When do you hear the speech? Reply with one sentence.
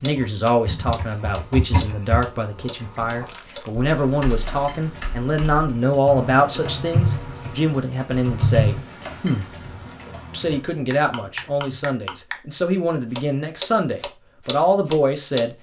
The speech can be heard from 0.0 to 9.4 s and from 10.3 to 15.5 s.